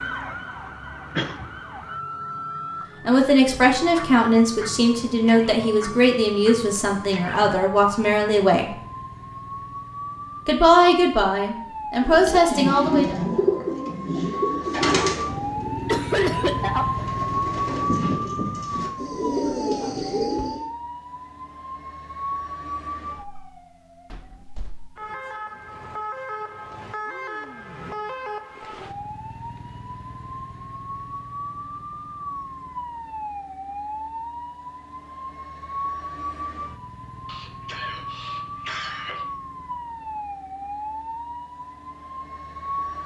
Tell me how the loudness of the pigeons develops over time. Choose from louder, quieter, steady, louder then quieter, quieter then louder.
quieter then louder.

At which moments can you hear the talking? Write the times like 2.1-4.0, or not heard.
3.0-8.8, 10.4-13.2.